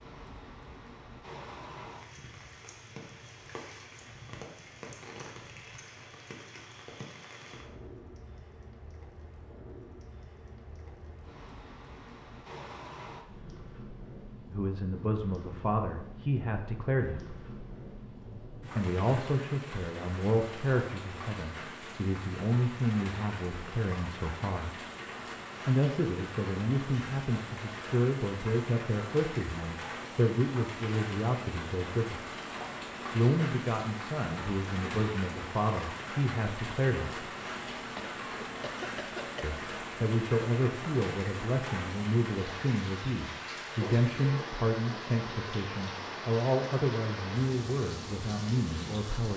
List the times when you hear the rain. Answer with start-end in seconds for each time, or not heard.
0.0-49.3.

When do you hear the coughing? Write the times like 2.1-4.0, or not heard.
38.0-39.5.